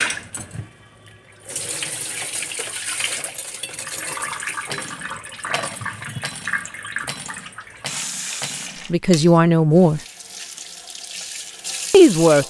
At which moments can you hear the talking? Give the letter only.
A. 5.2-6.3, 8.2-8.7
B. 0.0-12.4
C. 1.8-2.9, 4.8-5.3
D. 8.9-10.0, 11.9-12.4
D.